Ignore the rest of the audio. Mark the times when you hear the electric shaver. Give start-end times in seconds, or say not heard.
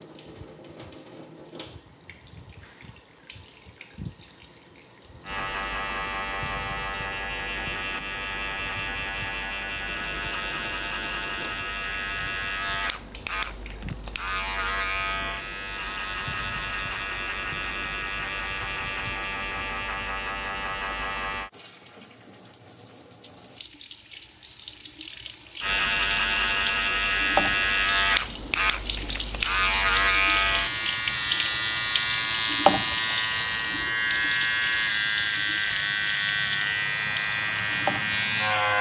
5.2-21.5, 25.6-38.7.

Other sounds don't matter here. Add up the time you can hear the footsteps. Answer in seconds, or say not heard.
not heard.